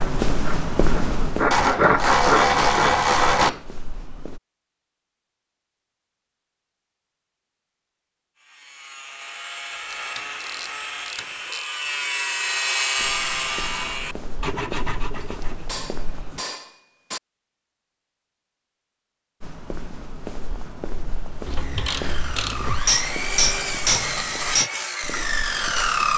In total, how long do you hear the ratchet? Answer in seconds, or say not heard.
5 s.